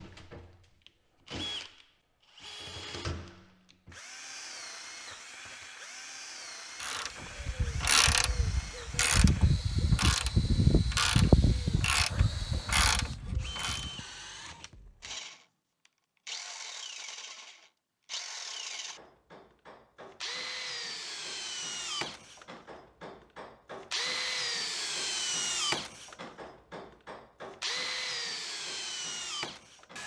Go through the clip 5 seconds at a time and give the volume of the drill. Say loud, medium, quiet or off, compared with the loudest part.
medium, medium, medium, medium, loud, loud.